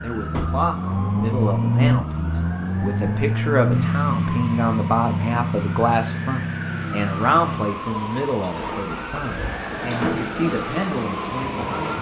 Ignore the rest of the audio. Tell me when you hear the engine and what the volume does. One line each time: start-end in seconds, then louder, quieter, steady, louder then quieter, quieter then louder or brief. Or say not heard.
0.0-11.9 quieter.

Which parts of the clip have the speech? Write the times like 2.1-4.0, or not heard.
0.0-11.9.